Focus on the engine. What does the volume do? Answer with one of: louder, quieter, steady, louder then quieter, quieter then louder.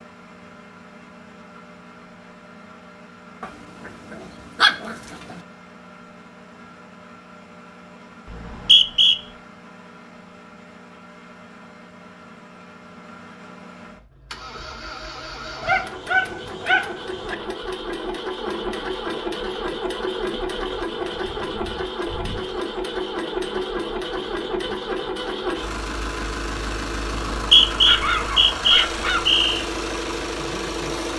louder.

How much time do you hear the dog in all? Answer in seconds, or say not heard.
5 s.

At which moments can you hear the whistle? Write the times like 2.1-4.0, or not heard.
8.3-9.2, 27.1-29.6.